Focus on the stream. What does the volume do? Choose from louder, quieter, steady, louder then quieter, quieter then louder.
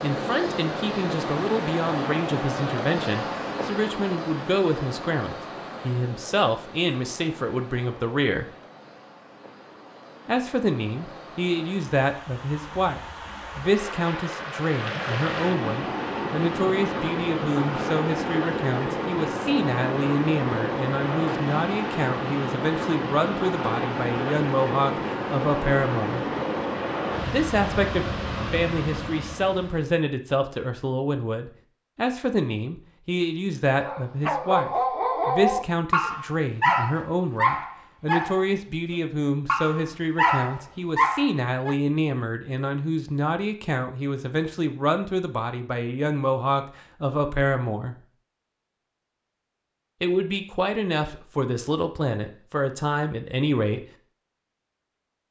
quieter then louder.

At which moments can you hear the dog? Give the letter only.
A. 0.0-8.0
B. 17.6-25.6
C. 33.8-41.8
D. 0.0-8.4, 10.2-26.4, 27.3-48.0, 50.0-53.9
C.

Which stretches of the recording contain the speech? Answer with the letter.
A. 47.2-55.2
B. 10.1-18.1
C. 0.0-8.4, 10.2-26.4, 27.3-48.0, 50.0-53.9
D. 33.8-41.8
C.